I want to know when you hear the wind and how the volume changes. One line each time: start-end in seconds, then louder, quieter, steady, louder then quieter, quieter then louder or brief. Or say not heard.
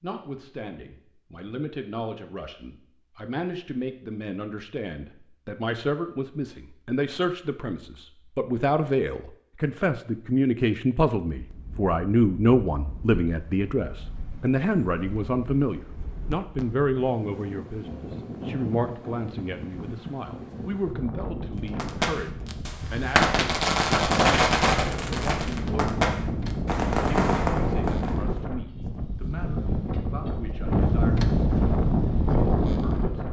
11.3-33.2 louder.